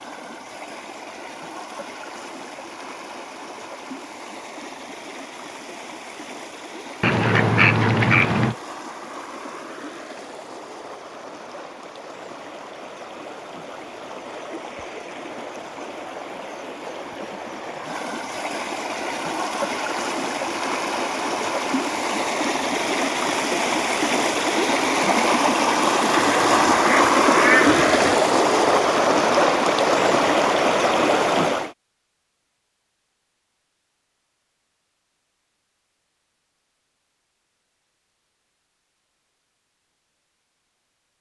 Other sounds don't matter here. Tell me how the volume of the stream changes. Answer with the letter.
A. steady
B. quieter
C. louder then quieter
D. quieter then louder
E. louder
E.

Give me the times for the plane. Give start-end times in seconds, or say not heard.
not heard.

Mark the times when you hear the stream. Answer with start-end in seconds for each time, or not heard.
0.0-31.7.